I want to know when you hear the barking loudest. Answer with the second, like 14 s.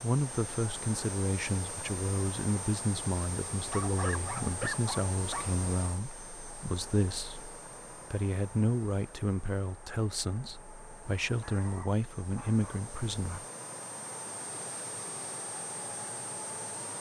5 s.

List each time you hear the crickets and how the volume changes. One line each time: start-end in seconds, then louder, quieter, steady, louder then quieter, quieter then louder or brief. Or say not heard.
not heard.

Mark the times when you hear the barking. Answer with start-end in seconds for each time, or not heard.
3.6-5.5, 11.4-13.4.